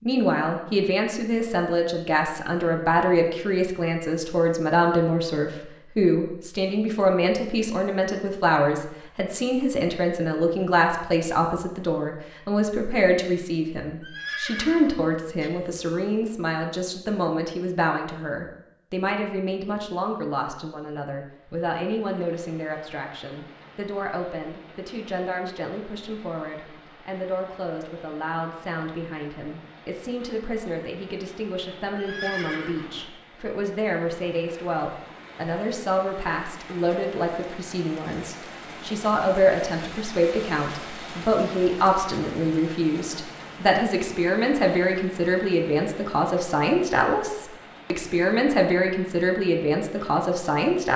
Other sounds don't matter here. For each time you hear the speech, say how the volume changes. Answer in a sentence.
The speech can be heard from 0.0 to 50.9 s, getting quieter then louder.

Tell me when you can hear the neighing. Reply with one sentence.
The neighing can be heard from 14.0 to 15.5 s and from 31.9 to 33.0 s.